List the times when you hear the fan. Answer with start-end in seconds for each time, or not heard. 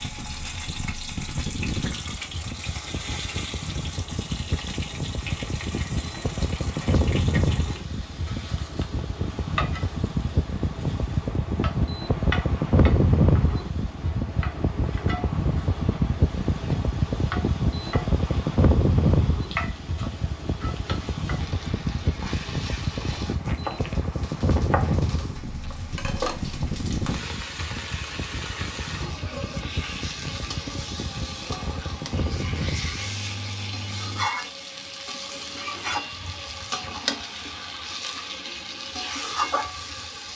0.0-34.3.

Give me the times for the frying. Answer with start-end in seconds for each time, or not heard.
0.0-40.3.